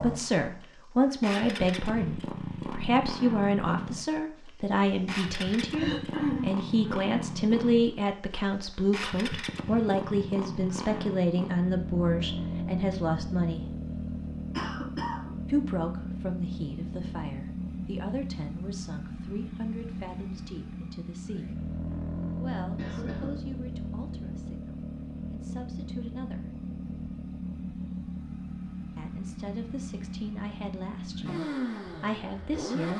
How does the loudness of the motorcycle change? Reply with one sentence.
The loudness of the motorcycle stays about the same.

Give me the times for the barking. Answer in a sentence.
You can't hear the barking here.